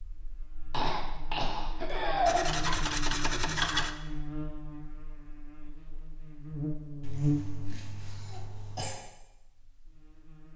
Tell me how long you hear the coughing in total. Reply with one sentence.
You can hear the coughing for 4 seconds altogether.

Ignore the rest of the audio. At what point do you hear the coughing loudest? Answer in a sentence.
The loudest moment of the coughing is at 2 seconds.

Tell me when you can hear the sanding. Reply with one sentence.
The sanding can be heard from 2.2 to 4.0 s.